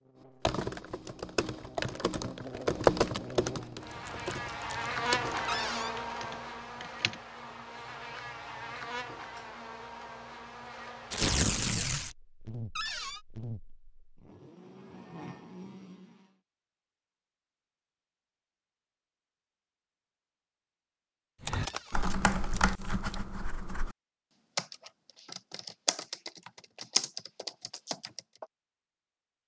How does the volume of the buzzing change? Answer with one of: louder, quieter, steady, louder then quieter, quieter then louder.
louder then quieter.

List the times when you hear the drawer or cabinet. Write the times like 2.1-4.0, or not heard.
5.5-6.0, 12.8-13.2, 21.6-22.1.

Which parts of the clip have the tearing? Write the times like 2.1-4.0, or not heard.
3.9-5.5, 11.1-12.2, 21.4-23.1.